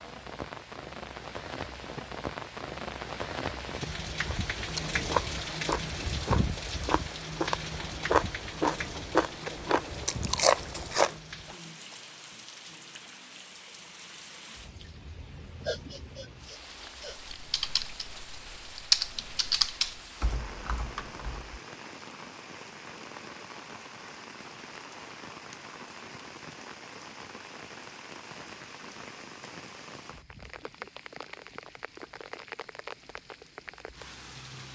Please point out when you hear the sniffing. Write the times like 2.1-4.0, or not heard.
15.6-17.2.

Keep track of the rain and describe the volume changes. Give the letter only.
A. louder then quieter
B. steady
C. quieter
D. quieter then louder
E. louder
C.